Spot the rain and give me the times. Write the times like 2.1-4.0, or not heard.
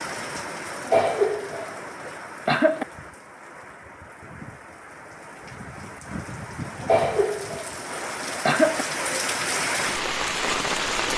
0.0-11.1.